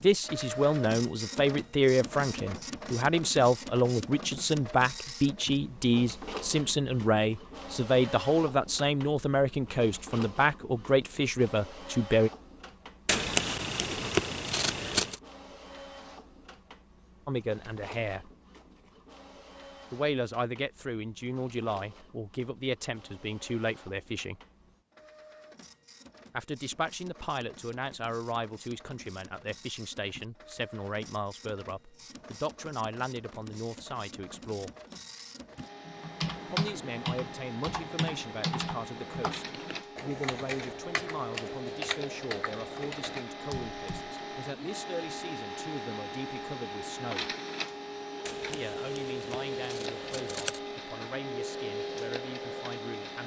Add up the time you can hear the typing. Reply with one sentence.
The typing can be heard for 8 seconds in total.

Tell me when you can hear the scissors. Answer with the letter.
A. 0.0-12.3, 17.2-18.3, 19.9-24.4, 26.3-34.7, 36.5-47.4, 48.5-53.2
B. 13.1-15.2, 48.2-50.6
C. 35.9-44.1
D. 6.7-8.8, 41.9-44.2
B.